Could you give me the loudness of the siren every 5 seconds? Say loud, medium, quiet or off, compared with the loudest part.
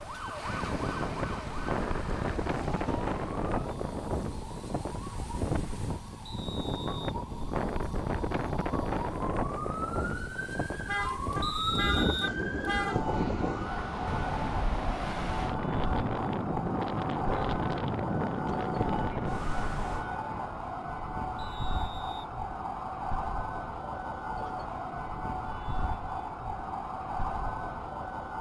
medium, medium, loud, loud, loud, loud.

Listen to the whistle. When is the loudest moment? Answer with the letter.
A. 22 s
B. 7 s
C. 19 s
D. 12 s
D.